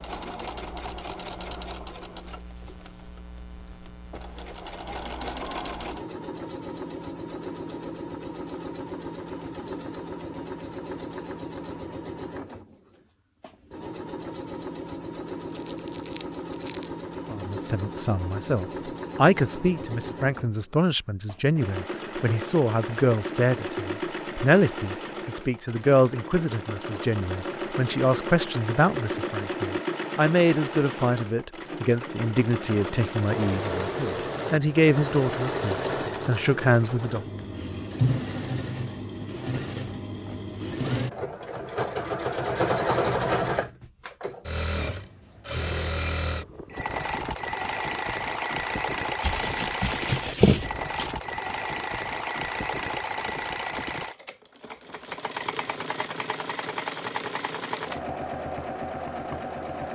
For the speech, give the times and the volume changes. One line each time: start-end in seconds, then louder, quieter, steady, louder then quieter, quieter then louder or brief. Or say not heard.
17.3-37.2 steady.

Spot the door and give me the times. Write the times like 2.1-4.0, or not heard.
not heard.